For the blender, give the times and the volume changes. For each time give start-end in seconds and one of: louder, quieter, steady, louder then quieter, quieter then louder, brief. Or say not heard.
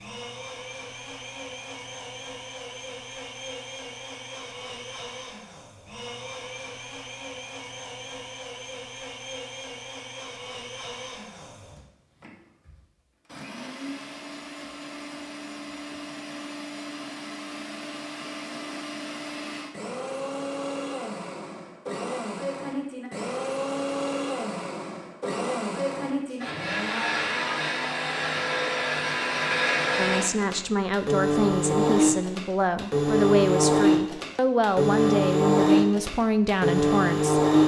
0.0-37.6 louder.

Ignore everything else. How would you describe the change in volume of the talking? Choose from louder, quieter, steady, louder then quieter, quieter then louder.
steady.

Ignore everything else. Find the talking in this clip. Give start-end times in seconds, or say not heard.
29.9-37.4.